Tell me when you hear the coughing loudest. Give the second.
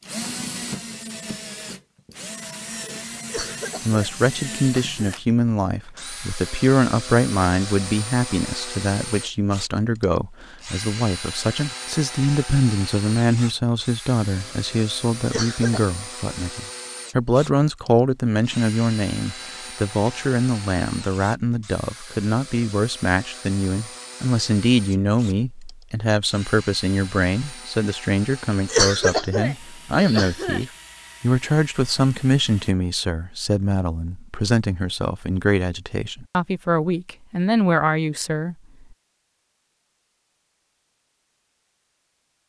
29 s.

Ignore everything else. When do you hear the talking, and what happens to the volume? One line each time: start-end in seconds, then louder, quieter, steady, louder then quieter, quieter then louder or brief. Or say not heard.
3.9-38.5 steady.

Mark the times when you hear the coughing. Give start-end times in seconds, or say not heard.
3.2-5.2, 15.2-15.9, 28.6-30.6.